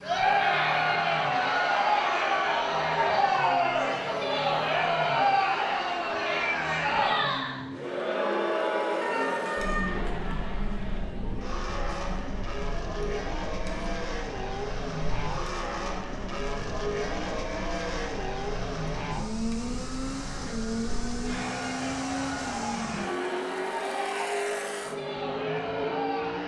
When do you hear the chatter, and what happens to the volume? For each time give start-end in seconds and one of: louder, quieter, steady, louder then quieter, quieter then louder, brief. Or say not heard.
0.0-26.4 quieter then louder.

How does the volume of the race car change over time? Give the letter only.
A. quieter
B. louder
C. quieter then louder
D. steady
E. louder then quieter
B.